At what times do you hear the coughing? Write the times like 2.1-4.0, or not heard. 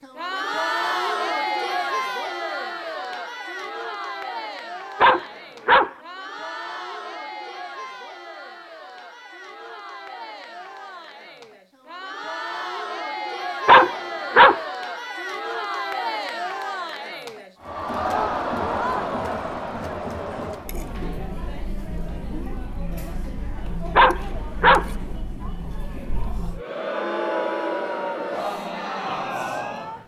not heard.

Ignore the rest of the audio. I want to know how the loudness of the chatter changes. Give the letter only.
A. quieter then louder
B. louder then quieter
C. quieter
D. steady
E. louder
A.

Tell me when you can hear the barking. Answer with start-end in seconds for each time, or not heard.
5.0-5.9, 13.7-14.6, 23.9-24.9.